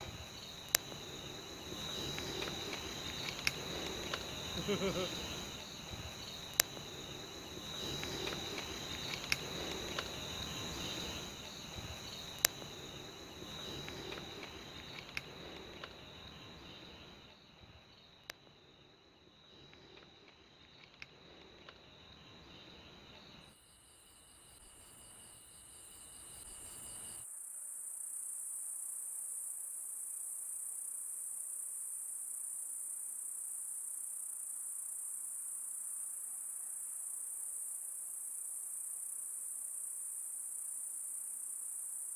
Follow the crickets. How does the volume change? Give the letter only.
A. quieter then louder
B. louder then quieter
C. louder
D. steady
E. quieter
E.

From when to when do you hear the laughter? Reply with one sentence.
The laughter can be heard from 4.5 to 5.1 s.